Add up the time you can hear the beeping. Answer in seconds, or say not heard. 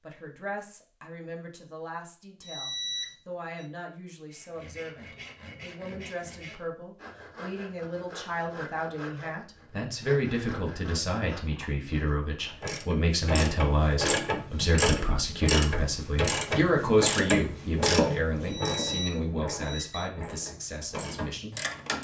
3 s.